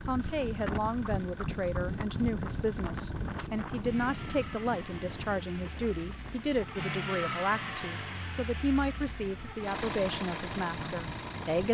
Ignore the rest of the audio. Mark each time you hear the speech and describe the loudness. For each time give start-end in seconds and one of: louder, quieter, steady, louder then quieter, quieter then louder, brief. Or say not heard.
0.1-11.6 steady.